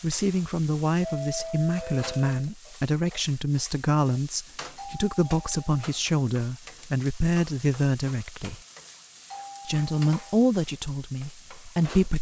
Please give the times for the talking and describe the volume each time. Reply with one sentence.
You can hear the talking from 0.0 to 8.6 s, at a steady volume; and briefly from 9.7 to 12.1 s.